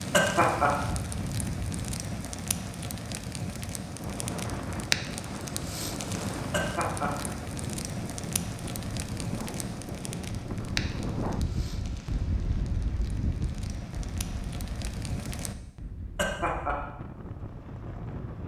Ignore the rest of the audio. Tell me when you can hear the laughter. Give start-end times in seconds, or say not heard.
0.1-0.7, 6.5-7.1, 16.1-16.8.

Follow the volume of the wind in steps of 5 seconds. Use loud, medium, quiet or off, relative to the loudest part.
loud, loud, loud, medium.